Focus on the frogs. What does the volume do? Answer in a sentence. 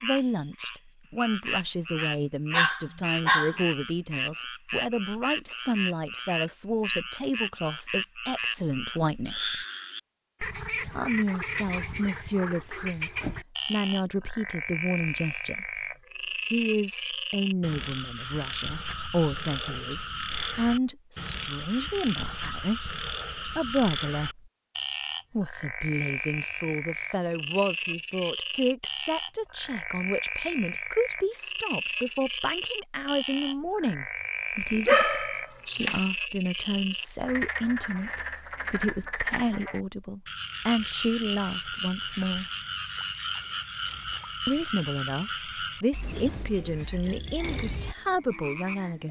The loudness of the frogs stays about the same.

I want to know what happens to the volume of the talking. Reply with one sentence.
The loudness of the talking stays about the same.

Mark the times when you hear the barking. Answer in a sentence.
The barking can be heard from 2.5 to 3.6 s and from 34.9 to 36.0 s.